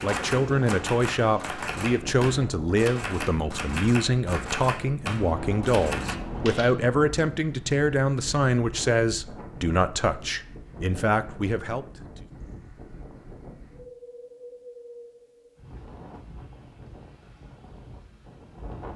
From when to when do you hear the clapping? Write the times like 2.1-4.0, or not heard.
0.0-6.2.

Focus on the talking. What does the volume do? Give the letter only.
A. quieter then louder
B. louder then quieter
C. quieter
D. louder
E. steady
E.